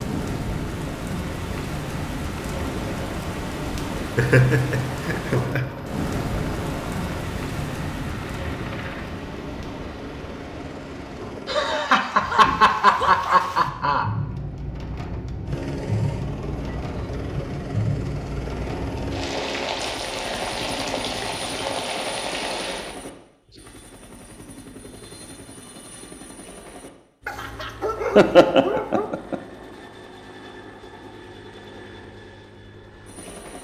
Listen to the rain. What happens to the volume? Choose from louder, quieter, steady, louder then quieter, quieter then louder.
quieter then louder.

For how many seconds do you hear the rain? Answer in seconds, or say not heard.
23 s.